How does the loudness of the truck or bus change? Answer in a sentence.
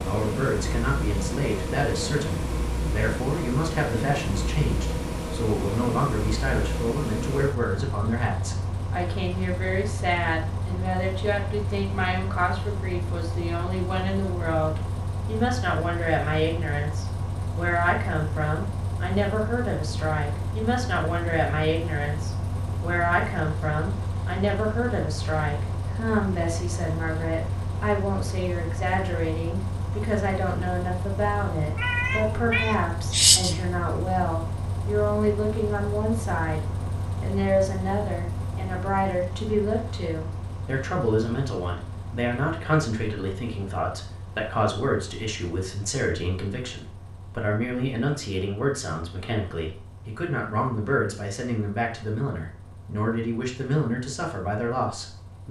The volume of the truck or bus goes down.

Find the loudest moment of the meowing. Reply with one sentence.
The loudest moment of the meowing is at 33 seconds.